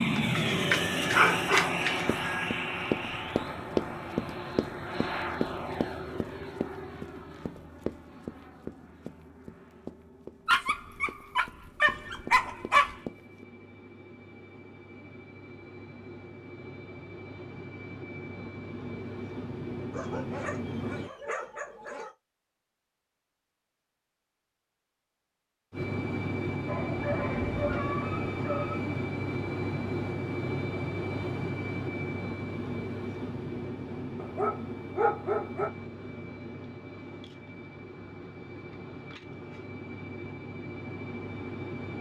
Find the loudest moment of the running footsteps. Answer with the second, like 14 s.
4 s.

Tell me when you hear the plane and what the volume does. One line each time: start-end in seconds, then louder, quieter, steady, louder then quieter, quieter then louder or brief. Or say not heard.
0.0-21.1 quieter then louder
25.7-41.9 quieter.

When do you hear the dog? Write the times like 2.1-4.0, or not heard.
0.1-2.1, 10.4-13.0, 19.9-22.1, 26.6-28.8, 34.1-35.7.